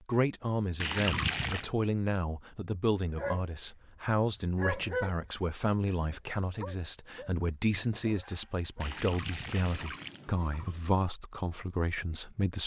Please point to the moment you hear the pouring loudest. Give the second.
1 s.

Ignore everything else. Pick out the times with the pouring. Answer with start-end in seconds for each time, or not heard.
0.8-1.7, 8.8-10.8.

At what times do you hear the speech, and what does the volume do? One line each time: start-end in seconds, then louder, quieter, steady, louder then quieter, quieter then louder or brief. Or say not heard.
0.1-12.6 steady.